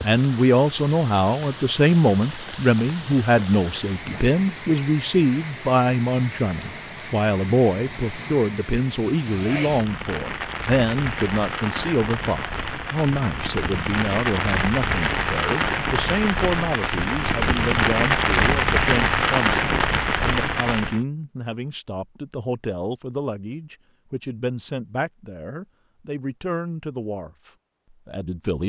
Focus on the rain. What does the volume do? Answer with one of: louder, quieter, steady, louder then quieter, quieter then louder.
louder.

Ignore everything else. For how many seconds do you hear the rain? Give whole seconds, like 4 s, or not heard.
21 s.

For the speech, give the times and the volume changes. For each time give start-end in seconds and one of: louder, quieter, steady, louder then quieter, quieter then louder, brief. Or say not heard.
0.0-28.6 quieter.